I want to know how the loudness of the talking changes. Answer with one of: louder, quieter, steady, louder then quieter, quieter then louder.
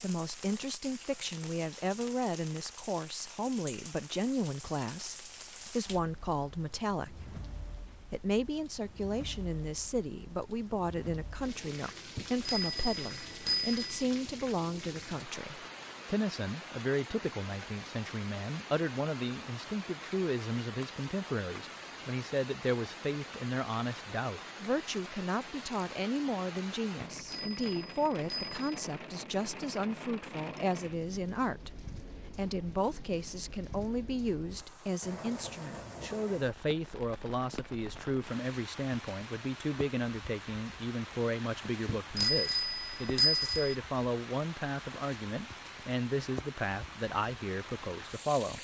steady.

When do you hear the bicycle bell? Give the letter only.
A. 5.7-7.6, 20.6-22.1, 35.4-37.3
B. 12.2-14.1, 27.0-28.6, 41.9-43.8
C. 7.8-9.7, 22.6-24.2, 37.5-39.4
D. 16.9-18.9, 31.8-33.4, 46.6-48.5
B.